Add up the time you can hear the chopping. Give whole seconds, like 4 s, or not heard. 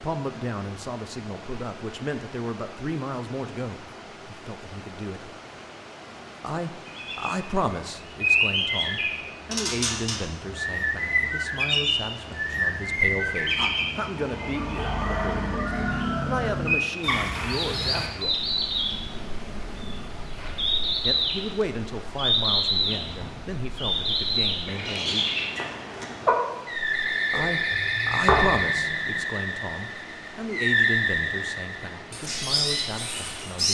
2 s.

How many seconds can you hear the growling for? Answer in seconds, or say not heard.
2 s.